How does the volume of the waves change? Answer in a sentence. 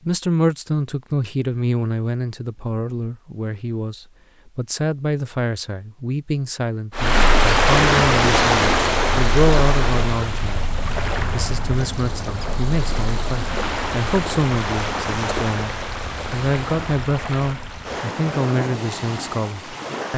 The volume of the waves goes down.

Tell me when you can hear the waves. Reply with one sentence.
You can hear the waves from 7.0 to 20.1 s.